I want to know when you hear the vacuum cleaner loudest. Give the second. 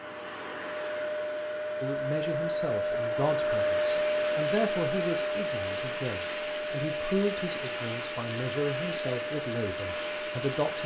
4 s.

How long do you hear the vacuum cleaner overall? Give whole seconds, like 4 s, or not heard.
11 s.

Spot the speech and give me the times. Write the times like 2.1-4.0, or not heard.
1.8-10.8.